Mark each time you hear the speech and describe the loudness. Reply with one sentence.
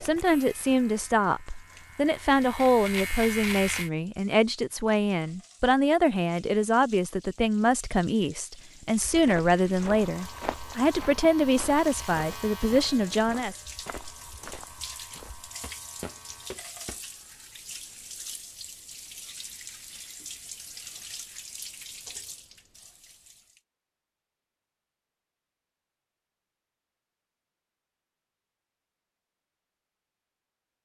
You can hear the speech from 0.0 to 13.6 s, at a steady volume.